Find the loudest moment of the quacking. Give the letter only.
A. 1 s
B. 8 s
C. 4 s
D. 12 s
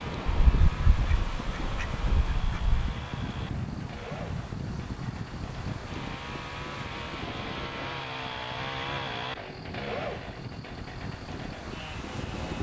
A.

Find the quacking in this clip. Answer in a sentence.
The quacking can be heard from 0.2 to 3.0 s.